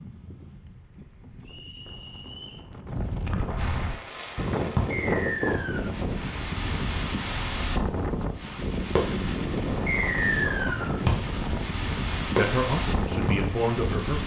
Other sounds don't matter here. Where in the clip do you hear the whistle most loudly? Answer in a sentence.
The volume of the whistle peaks at 10 seconds.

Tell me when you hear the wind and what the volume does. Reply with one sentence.
The wind can be heard from 0.0 to 14.2 s, getting louder.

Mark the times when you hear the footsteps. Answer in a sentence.
You can't hear the footsteps here.